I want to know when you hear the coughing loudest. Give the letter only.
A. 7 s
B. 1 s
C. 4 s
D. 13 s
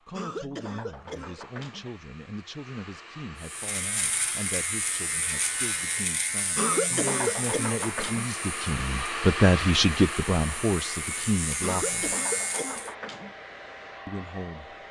A.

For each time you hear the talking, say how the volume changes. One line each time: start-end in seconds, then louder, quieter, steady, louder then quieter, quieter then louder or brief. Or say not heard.
0.1-12.2 louder
14.1-14.8 brief.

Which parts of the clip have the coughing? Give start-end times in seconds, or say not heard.
0.1-1.9, 6.5-8.3, 11.6-13.3.